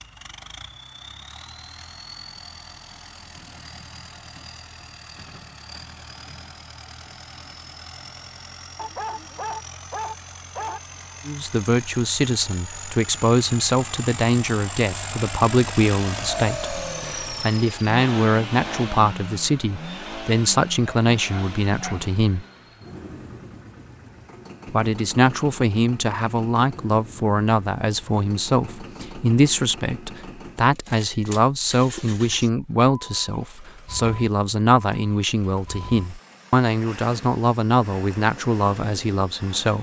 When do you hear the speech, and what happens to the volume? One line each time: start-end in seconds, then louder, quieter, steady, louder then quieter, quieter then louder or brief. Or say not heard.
11.2-22.4 steady
24.6-39.7 steady.